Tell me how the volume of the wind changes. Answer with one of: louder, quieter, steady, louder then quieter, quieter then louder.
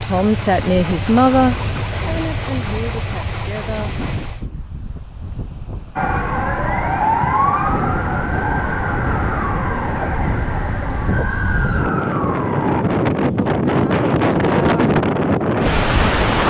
louder.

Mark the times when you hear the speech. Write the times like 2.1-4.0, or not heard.
0.0-4.0.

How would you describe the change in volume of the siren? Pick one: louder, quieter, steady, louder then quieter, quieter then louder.
quieter.